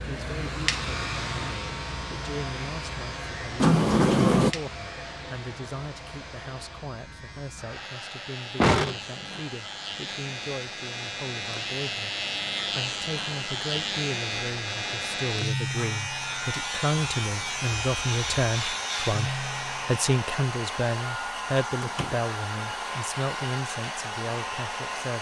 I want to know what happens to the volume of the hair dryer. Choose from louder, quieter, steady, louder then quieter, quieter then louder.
quieter then louder.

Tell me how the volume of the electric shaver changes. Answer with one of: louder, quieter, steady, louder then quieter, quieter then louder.
quieter then louder.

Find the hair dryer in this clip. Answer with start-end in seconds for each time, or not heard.
0.0-25.1.